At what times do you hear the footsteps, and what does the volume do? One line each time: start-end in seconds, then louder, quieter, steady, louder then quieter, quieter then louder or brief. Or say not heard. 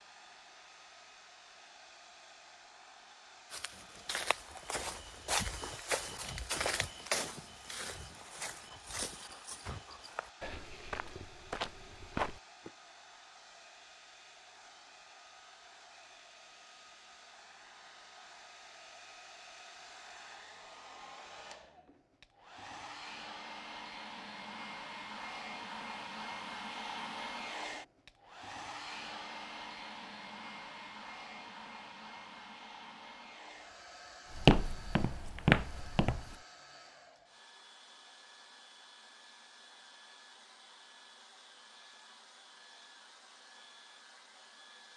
3.5-12.7 quieter then louder
34.3-36.4 brief.